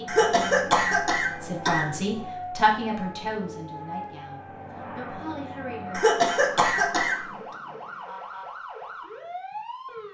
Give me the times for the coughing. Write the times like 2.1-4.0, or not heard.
0.1-1.9, 5.9-7.2.